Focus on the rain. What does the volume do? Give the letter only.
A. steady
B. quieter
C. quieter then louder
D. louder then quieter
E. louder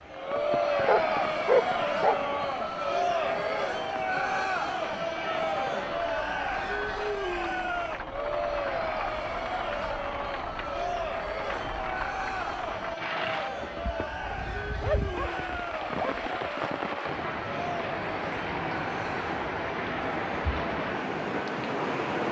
E.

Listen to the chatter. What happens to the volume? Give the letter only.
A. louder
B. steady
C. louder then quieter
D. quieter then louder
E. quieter
E.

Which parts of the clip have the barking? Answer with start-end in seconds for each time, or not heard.
0.8-2.1, 14.3-16.3.